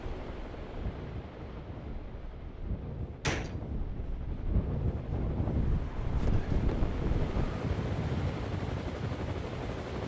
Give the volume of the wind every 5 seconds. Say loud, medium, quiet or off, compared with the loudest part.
medium, loud.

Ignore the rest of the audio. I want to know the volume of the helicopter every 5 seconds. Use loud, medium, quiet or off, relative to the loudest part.
medium, loud.